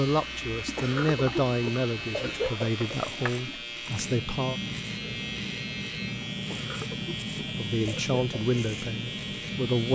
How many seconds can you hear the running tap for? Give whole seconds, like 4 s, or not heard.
10 s.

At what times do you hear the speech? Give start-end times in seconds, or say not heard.
0.0-4.6, 7.5-9.9.